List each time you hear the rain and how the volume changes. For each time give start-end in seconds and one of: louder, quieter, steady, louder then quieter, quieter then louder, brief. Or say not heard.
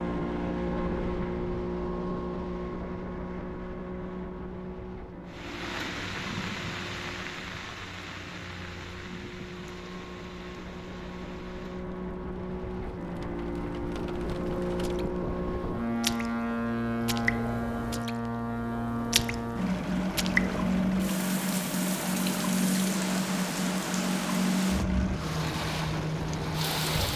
5.2-27.1 quieter then louder.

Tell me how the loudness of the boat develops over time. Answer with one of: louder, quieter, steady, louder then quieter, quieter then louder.
quieter then louder.